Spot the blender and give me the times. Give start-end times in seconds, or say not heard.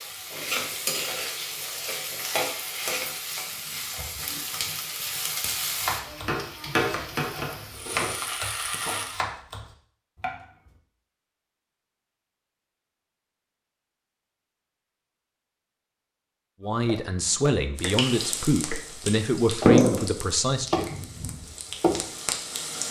not heard.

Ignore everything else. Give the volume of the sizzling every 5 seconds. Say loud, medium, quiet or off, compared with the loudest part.
medium, medium, off, loud, medium.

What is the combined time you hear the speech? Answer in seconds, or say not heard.
4 s.